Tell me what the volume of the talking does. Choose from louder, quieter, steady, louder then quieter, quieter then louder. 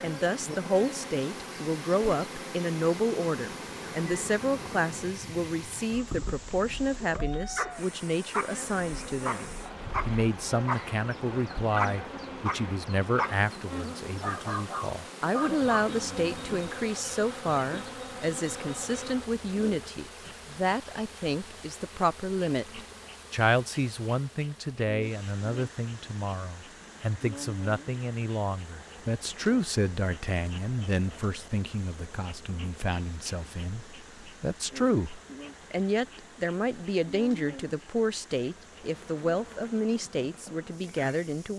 steady.